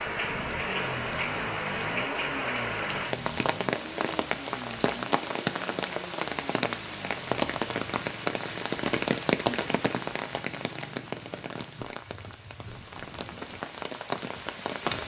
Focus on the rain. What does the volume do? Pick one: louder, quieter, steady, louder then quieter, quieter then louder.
quieter.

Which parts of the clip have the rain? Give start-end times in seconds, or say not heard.
0.0-15.0.